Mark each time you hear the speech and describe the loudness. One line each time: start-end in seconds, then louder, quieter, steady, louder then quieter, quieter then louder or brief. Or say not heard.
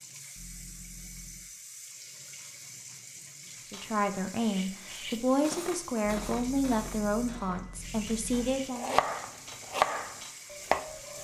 3.6-8.9 steady.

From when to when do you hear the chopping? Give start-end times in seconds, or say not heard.
8.3-11.1.